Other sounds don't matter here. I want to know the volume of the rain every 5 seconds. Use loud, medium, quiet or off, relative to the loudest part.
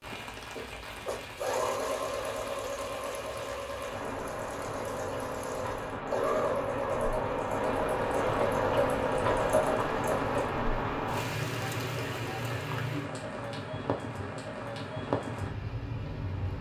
medium, loud, loud, loud.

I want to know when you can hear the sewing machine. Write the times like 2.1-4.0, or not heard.
0.1-10.5.